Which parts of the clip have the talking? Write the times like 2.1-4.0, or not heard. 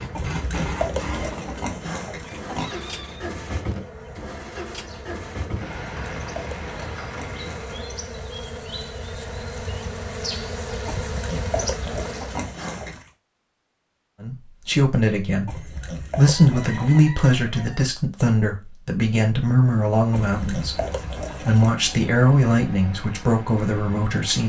14.2-24.4.